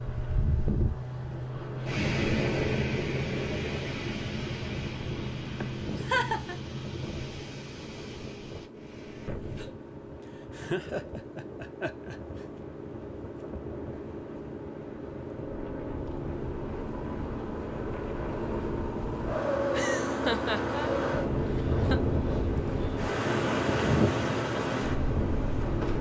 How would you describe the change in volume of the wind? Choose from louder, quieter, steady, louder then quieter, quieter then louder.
quieter then louder.